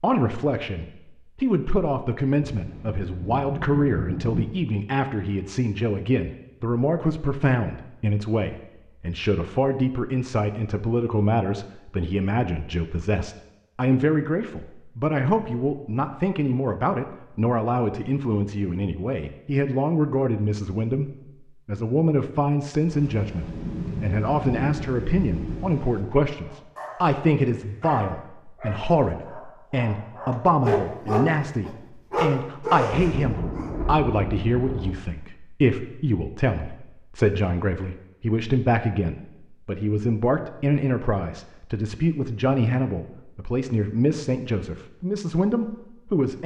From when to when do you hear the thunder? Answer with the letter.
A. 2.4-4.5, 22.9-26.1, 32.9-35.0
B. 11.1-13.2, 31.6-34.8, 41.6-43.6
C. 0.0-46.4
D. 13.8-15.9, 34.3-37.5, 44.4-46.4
A.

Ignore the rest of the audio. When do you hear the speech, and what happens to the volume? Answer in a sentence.
You can hear the speech from 0.0 to 46.4 s, at a steady volume.